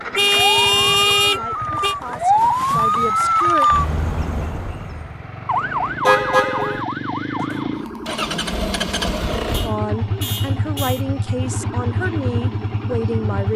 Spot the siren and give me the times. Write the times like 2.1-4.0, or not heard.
0.2-13.5.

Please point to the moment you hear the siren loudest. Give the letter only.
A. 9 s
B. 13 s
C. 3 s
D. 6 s
C.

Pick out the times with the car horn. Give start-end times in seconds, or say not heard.
0.1-1.9, 6.0-6.8, 9.5-11.1.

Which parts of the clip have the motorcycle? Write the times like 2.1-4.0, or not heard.
0.0-13.5.